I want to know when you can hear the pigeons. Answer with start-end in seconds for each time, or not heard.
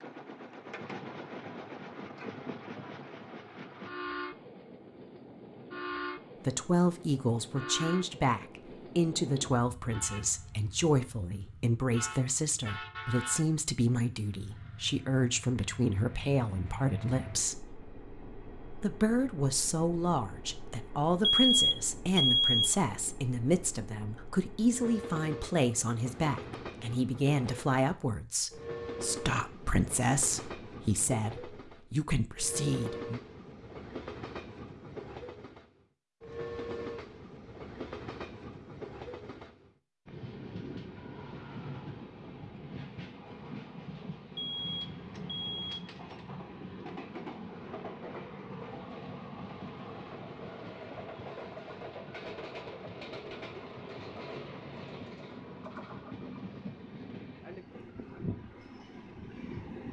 not heard.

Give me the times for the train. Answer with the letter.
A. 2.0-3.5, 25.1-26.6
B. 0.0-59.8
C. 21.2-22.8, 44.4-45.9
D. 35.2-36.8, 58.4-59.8
B.